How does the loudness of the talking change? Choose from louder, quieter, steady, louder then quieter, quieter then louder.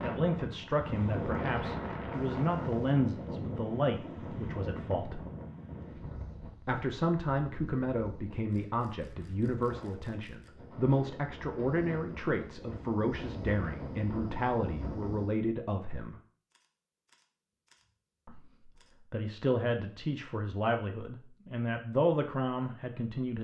steady.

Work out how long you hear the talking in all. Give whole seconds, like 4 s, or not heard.
20 s.